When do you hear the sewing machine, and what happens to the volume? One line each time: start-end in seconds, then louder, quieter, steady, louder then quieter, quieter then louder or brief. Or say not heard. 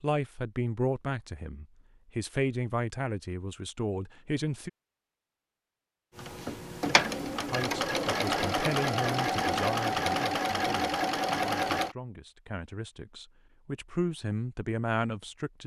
6.2-11.9 steady.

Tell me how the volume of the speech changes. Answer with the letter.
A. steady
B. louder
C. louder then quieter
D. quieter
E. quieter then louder
E.